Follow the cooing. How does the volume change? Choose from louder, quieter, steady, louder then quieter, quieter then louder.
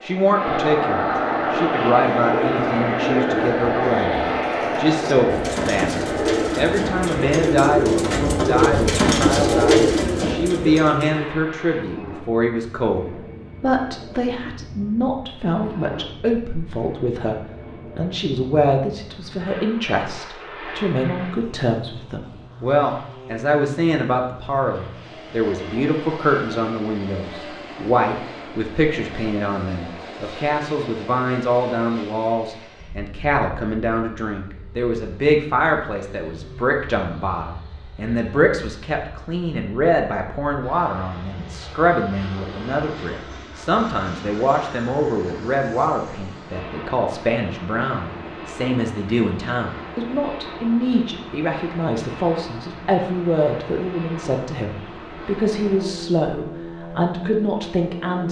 louder.